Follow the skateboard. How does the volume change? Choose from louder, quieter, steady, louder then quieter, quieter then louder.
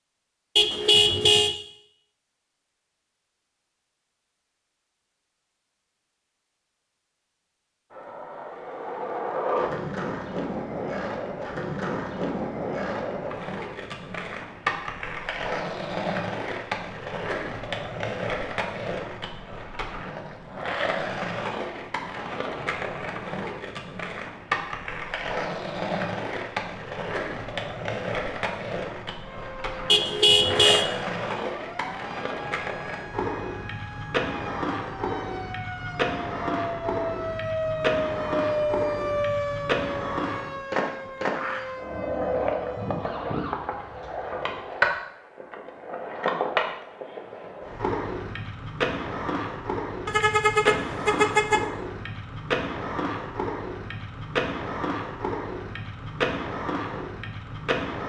steady.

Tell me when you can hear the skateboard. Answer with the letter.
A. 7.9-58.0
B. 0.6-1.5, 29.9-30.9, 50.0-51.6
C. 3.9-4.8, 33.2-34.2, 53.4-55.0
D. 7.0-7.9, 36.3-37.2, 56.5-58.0
A.